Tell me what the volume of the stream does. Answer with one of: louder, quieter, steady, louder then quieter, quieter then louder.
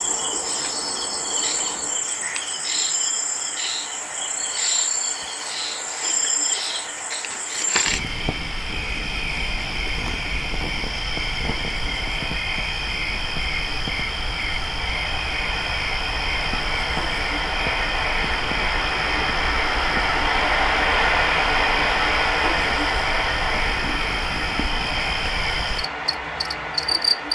louder.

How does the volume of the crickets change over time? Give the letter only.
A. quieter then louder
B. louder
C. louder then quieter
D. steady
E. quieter
D.